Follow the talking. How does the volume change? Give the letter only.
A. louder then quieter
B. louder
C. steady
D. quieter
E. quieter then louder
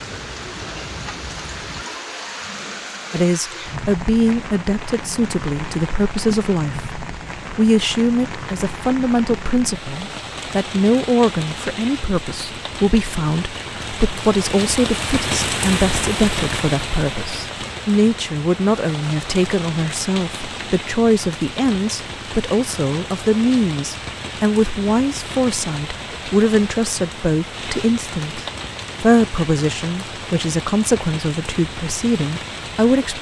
C.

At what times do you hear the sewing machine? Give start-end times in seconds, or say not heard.
not heard.